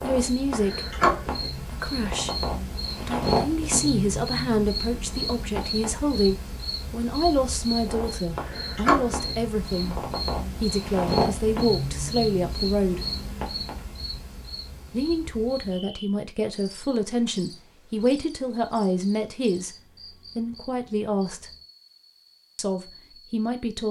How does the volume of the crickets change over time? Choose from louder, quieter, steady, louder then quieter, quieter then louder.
quieter.